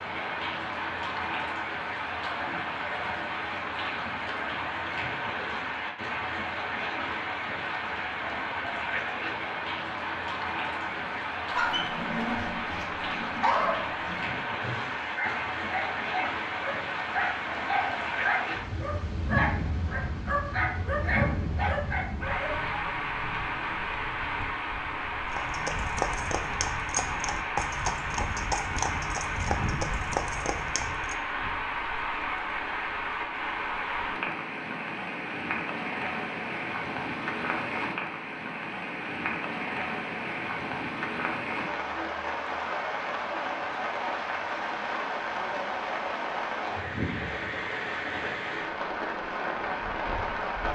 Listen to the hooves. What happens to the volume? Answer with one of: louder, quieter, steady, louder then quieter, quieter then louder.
steady.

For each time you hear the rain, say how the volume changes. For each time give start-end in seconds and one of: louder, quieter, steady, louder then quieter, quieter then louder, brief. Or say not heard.
0.0-50.7 steady.